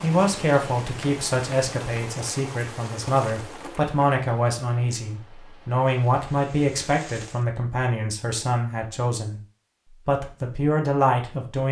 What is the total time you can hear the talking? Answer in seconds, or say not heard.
11 s.